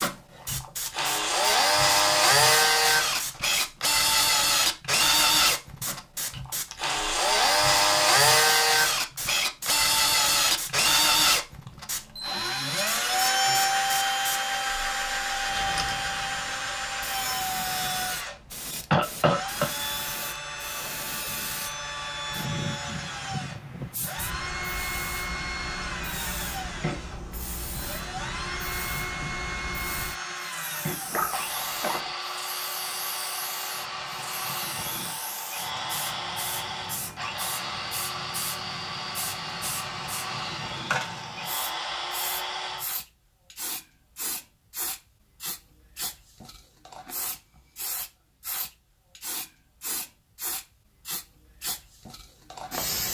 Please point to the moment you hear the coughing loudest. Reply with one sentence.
The loudest moment of the coughing is at 19 seconds.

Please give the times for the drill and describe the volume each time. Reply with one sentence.
The drill can be heard from 0.0 to 42.9 s, getting quieter.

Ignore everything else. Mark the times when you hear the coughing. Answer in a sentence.
You can hear the coughing from 18.9 to 19.7 s and from 31.1 to 32.1 s.